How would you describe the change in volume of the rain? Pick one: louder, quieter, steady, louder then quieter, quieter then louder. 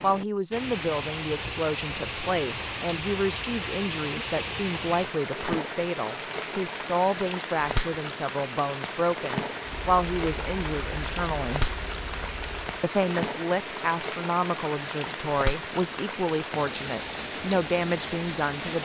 steady.